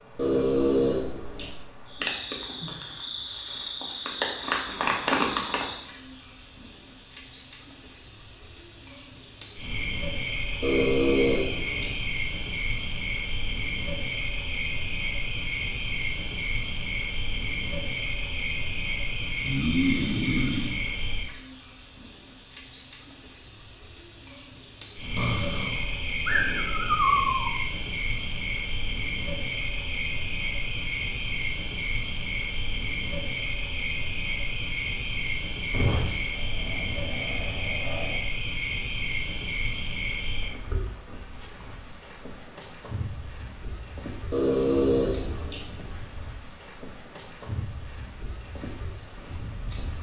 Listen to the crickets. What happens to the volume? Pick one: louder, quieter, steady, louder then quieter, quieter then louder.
steady.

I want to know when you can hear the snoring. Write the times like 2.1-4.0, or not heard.
0.1-1.5, 10.6-11.9, 19.4-21.2, 25.1-27.5, 35.7-38.2, 44.3-45.6.